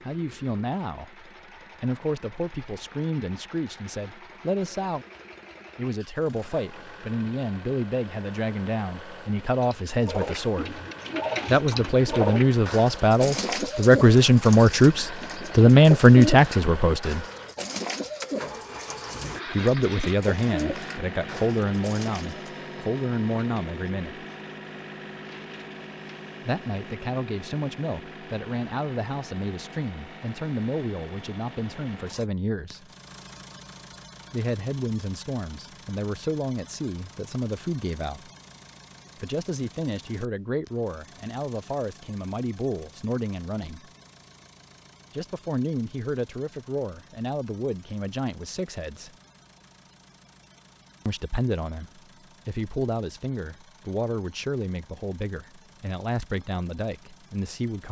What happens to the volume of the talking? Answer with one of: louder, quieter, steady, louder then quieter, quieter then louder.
louder then quieter.